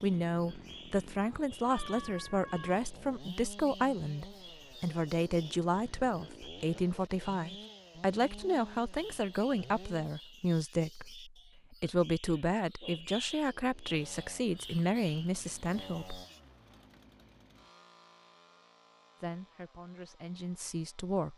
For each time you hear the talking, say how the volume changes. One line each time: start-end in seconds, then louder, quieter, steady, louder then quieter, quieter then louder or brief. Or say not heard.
0.0-16.2 steady
19.2-21.3 brief.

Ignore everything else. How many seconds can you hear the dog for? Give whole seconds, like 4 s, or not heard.
not heard.